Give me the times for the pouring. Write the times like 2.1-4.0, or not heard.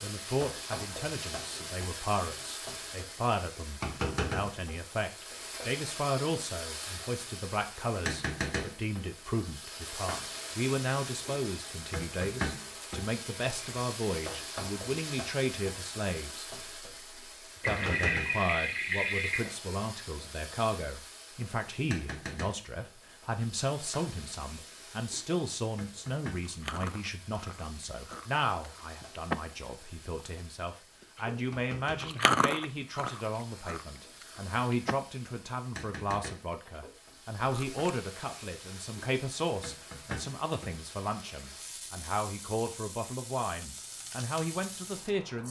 17.6-19.5.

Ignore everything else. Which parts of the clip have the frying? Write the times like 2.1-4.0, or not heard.
0.0-45.4.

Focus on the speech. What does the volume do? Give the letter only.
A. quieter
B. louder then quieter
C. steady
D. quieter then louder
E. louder
C.